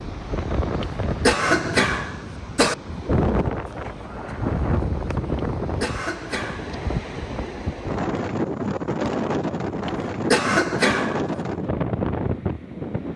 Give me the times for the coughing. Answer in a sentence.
The coughing can be heard from 0.8 to 2.8 s, from 5.3 to 6.7 s and from 9.8 to 11.2 s.